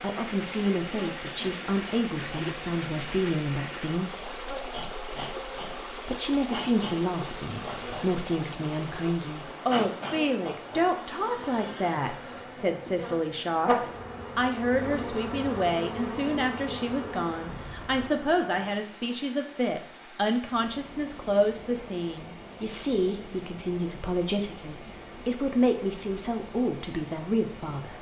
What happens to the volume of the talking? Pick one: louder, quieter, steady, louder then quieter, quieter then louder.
steady.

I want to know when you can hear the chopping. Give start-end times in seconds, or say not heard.
not heard.